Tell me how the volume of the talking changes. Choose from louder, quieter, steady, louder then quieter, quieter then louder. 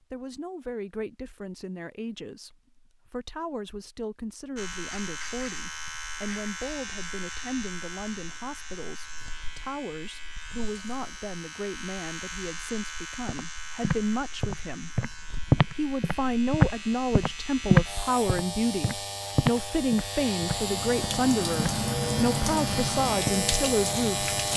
louder.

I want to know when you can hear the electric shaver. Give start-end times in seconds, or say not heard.
4.5-24.5.